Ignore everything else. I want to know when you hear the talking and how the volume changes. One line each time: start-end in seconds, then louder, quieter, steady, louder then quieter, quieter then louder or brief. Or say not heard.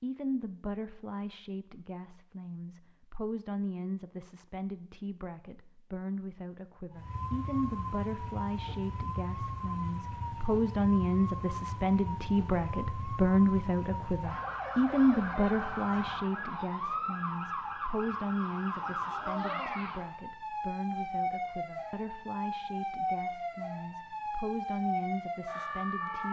0.0-26.2 louder then quieter.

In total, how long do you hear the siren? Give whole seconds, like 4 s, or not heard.
19 s.